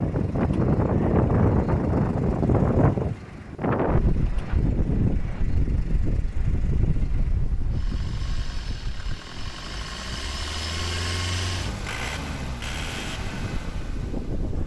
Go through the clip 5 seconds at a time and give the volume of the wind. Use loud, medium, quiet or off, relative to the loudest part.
loud, medium, quiet.